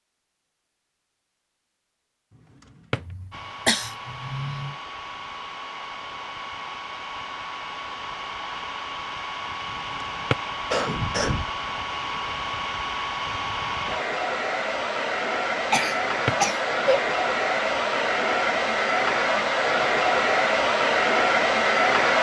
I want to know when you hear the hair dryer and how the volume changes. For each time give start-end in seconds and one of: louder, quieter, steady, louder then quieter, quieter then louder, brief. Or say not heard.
3.3-22.1 louder.